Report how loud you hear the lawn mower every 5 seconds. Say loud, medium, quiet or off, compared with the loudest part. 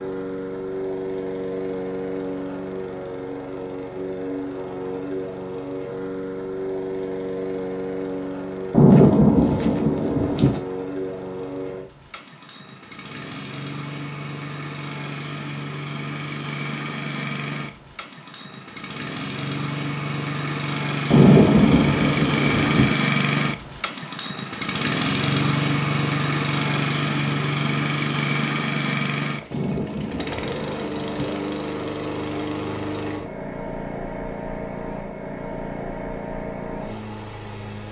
medium, medium, medium, medium, loud, loud, medium, medium.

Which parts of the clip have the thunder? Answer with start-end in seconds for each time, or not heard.
8.7-10.6, 21.1-22.9, 29.5-31.4.